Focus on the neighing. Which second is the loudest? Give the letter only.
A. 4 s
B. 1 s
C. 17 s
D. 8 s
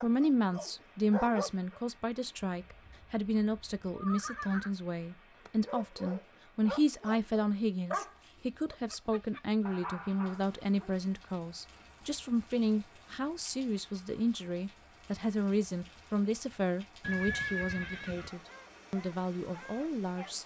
C.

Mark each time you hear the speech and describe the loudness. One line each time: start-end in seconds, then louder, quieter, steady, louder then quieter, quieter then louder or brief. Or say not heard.
0.0-20.4 steady.